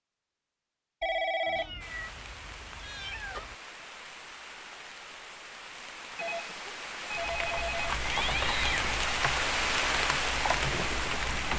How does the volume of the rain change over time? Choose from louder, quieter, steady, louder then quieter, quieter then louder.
louder.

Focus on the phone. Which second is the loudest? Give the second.
1 s.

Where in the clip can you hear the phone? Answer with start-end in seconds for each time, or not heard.
1.0-1.9, 6.2-7.9.